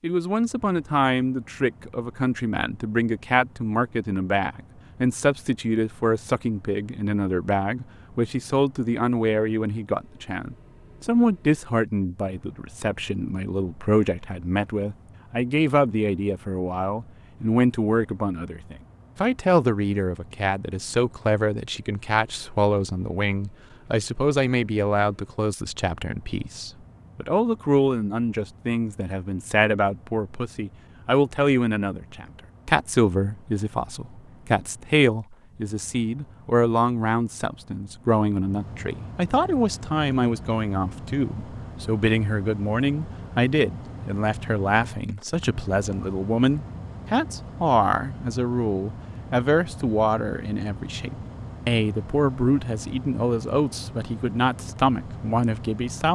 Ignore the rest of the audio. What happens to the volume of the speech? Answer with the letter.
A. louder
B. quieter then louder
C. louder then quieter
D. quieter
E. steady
E.